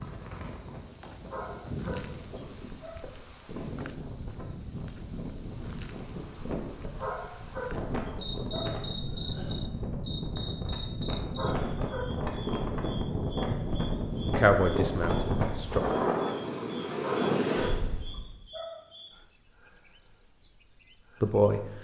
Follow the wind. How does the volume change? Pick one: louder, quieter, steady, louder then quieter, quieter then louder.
louder.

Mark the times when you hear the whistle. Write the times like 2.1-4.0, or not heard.
not heard.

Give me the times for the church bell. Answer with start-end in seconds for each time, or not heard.
not heard.